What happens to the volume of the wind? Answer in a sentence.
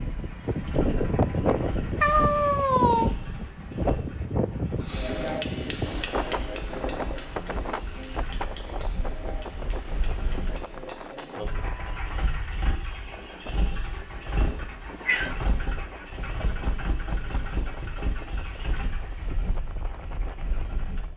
The loudness of the wind goes down.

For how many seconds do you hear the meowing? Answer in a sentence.
You can hear the meowing for 2 seconds altogether.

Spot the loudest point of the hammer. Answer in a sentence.
The loudest moment of the hammer is at 5 seconds.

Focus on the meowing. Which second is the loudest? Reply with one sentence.
The loudest moment of the meowing is at 2 seconds.